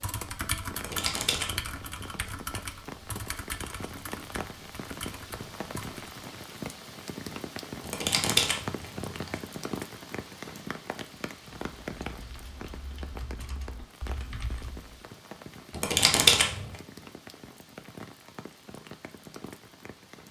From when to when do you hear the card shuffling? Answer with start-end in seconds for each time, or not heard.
0.8-2.3, 7.8-9.4, 15.8-16.6.